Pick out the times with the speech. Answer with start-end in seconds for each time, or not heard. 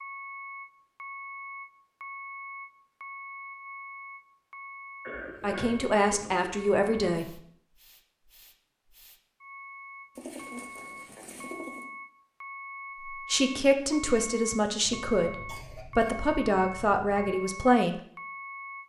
5.4-7.3, 13.1-18.0.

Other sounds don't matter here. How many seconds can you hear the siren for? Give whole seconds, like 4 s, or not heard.
not heard.